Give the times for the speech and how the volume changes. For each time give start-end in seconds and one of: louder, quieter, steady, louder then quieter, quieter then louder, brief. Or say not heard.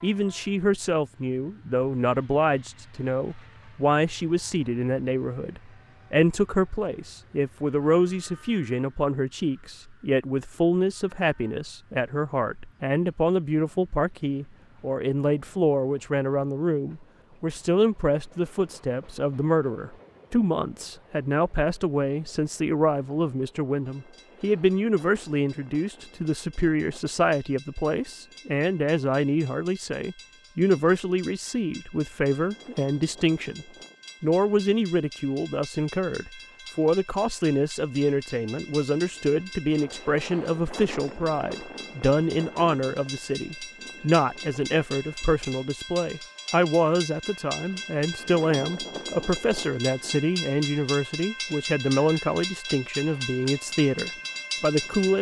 0.0-55.1 steady.